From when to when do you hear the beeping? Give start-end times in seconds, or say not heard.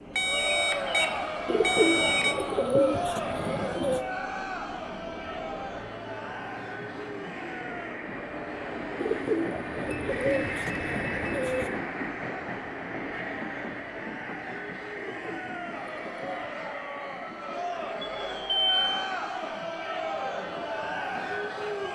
0.1-2.4, 9.6-11.5, 18.1-18.9.